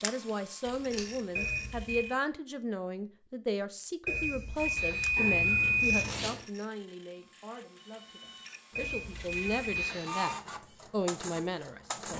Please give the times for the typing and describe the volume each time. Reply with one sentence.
The typing can't be heard in this clip.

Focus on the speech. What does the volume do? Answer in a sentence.
The volume of the speech goes down, then up.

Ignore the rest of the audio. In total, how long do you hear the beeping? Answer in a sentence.
You can hear the beeping for 4 seconds altogether.